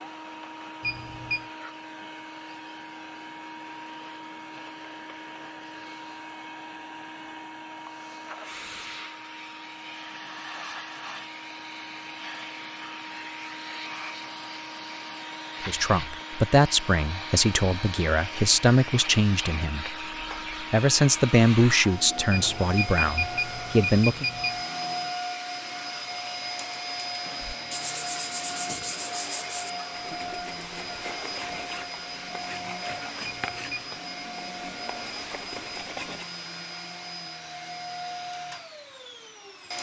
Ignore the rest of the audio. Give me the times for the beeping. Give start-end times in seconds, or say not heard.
0.8-1.4, 22.3-24.6, 33.2-34.0.